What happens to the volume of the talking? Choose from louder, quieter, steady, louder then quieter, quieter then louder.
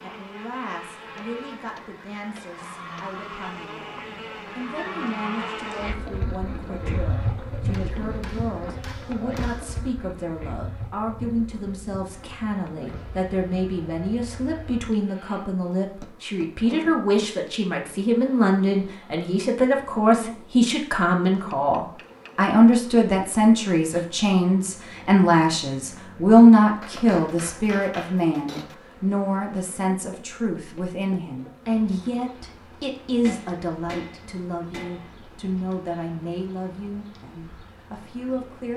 louder then quieter.